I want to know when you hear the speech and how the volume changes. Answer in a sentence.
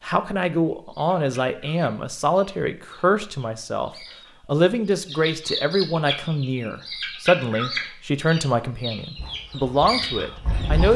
The speech can be heard from 0.0 to 10.9 s, at a steady volume.